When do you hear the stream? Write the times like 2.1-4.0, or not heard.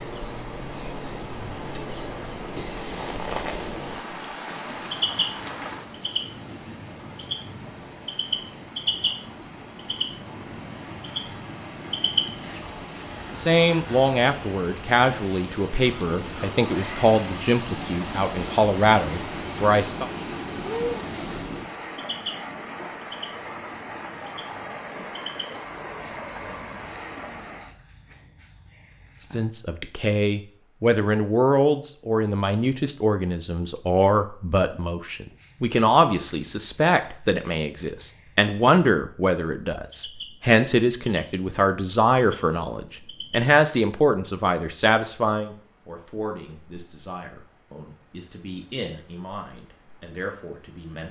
0.0-27.8.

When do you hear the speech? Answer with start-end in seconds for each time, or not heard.
13.3-20.1, 29.2-51.0.